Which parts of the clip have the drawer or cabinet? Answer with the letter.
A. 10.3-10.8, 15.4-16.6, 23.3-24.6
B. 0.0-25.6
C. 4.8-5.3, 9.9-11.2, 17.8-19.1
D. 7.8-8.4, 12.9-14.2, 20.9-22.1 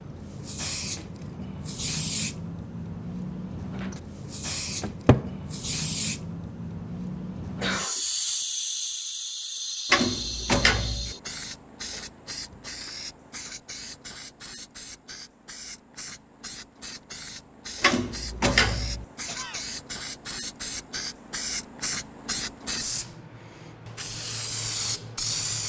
C.